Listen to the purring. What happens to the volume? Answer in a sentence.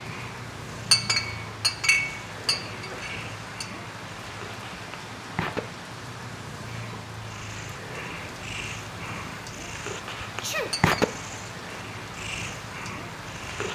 The volume of the purring goes up.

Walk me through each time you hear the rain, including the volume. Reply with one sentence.
The rain can be heard from 0.0 to 13.7 s, at a steady volume.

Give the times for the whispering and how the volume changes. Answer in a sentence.
You can't hear the whispering here.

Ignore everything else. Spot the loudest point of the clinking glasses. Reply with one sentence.
The loudest moment of the clinking glasses is at 1 second.